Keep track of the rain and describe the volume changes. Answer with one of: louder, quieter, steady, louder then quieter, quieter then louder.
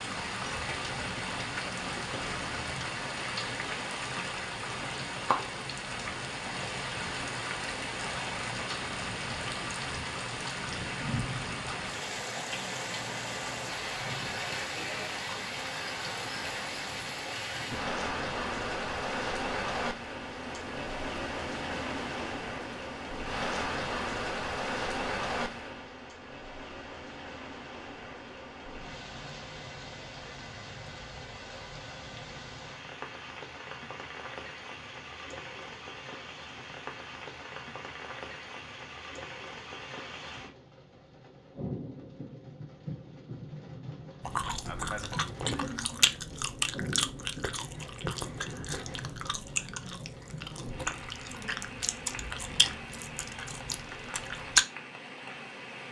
quieter.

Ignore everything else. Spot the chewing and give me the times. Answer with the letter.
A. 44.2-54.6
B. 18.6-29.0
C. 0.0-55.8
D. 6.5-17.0
A.